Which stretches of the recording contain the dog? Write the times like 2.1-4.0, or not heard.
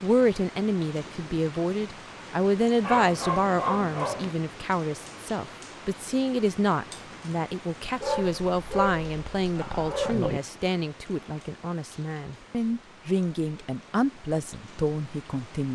2.8-4.3, 8.0-10.4.